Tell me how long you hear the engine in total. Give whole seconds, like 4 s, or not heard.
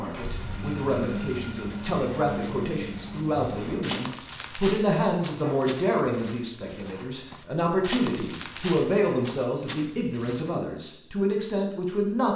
4 s.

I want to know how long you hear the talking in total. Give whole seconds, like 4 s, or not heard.
12 s.